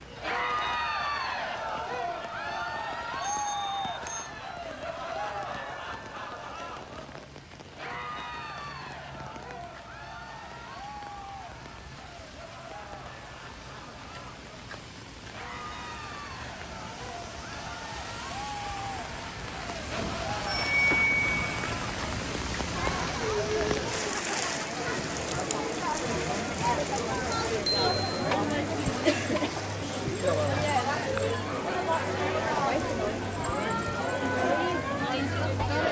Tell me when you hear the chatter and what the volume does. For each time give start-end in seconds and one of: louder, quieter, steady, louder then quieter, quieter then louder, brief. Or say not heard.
0.1-35.8 quieter then louder.